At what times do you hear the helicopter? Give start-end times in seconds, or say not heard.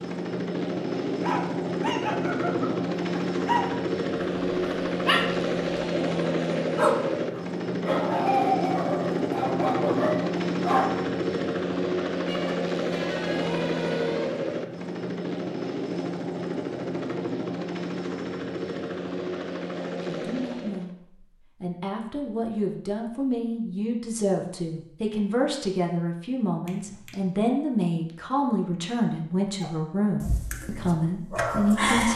0.0-20.9.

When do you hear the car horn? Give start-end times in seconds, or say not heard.
12.2-14.3, 26.6-27.1.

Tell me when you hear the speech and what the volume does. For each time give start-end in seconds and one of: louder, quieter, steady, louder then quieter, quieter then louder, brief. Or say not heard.
20.1-21.0 brief
21.6-32.1 steady.